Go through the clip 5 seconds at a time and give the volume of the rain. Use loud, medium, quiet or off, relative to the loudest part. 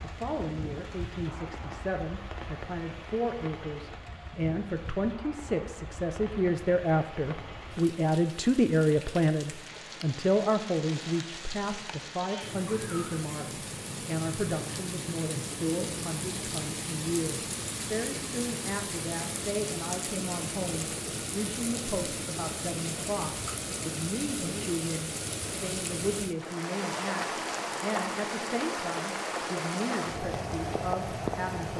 medium, medium, medium, loud, loud, loud, loud.